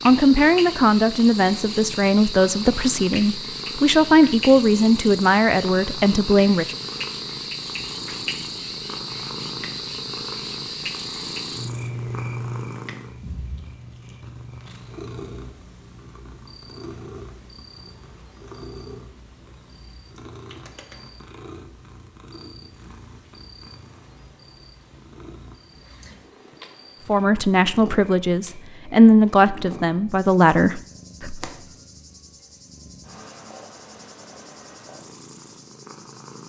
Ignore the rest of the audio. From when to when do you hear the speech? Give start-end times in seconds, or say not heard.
0.1-6.8, 27.1-31.5.